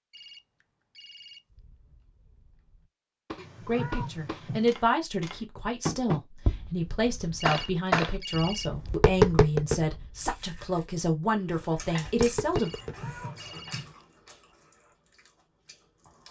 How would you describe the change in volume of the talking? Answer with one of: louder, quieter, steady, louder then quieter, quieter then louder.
steady.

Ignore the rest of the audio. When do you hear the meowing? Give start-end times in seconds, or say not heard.
3.4-4.7, 12.6-13.9.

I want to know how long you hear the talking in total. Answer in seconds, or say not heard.
9 s.